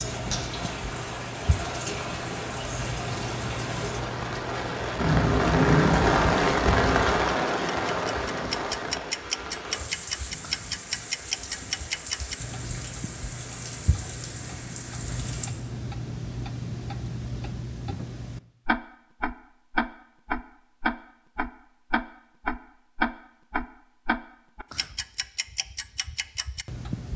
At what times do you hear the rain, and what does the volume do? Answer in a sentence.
You can hear the rain from 0.0 to 15.5 s, getting louder then quieter.